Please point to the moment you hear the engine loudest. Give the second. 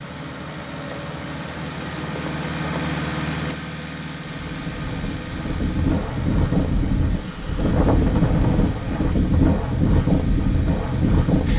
3 s.